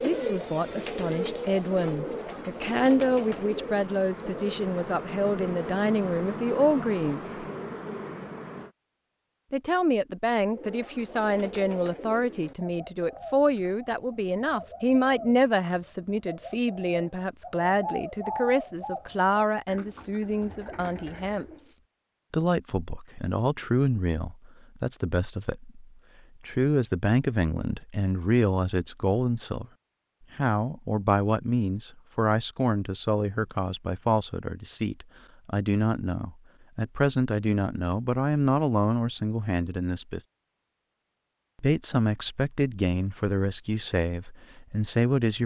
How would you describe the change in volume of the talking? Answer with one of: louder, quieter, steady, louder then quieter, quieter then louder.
steady.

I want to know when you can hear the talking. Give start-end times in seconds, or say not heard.
0.0-7.5, 9.5-25.8, 26.4-29.6, 30.4-40.2, 41.6-45.4.